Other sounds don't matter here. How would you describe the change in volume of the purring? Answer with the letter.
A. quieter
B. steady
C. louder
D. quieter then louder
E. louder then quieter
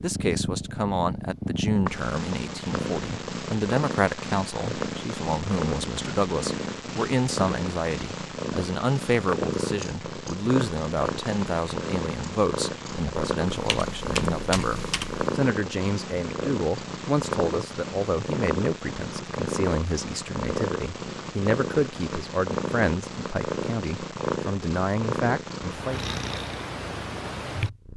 B.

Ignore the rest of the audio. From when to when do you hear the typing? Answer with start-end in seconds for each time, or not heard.
13.5-15.2.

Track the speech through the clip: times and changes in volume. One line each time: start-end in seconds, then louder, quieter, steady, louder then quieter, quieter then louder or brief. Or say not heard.
0.0-26.1 steady.